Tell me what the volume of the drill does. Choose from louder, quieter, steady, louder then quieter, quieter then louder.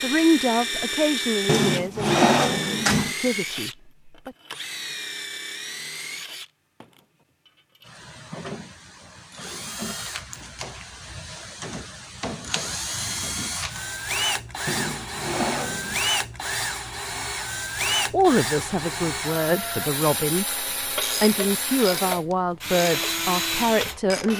quieter then louder.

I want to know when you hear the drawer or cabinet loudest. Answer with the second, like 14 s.
2 s.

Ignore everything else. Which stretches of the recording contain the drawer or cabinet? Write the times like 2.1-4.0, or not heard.
1.4-3.1, 14.7-16.0.